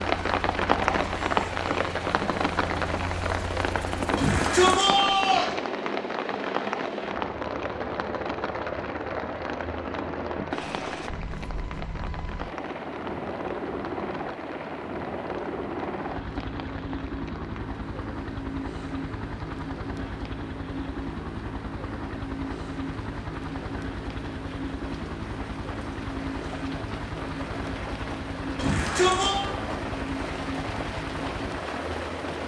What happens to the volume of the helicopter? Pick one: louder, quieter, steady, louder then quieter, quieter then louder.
steady.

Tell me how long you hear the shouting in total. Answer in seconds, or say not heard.
2 s.